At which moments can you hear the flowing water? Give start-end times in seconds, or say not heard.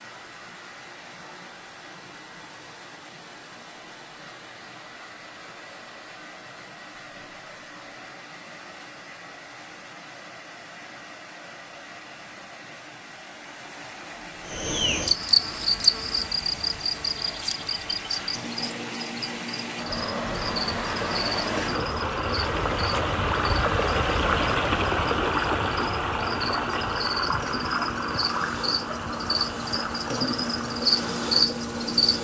0.0-32.1.